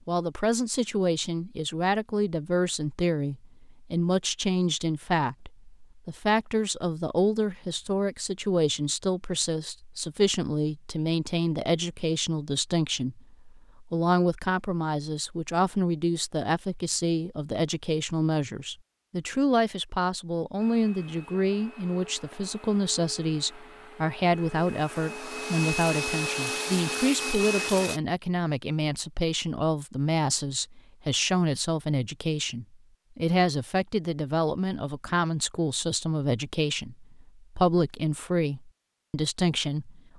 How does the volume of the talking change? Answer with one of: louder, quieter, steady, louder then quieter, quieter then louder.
steady.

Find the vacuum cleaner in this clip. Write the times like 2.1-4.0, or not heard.
20.6-28.0.